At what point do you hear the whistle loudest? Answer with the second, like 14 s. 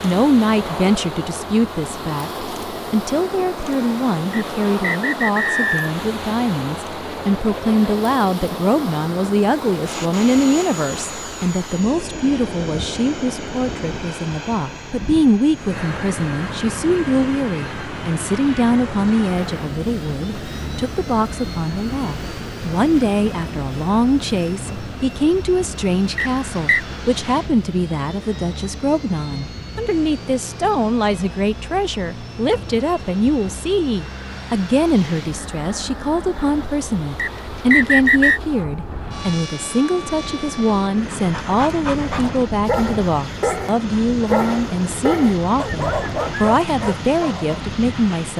38 s.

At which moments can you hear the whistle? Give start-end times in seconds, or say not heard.
4.3-5.9, 26.1-26.8, 37.1-38.4.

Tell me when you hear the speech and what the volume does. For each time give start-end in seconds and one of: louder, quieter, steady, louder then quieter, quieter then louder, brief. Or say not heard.
0.0-48.3 steady.